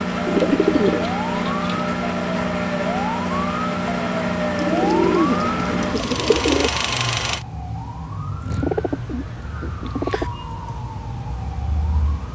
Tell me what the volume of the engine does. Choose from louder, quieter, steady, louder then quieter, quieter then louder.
steady.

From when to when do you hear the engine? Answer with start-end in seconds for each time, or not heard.
0.0-7.5.